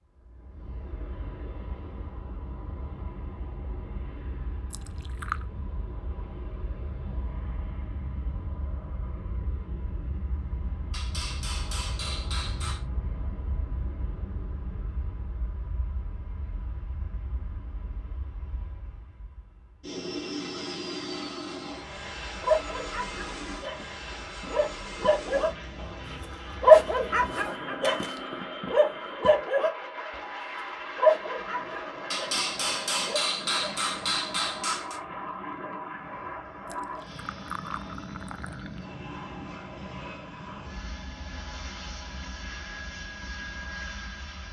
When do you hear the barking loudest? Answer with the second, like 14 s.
27 s.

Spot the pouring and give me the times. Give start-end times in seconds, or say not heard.
4.7-5.5, 36.6-38.9.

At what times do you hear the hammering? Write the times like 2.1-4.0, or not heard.
10.9-12.8, 32.1-35.0.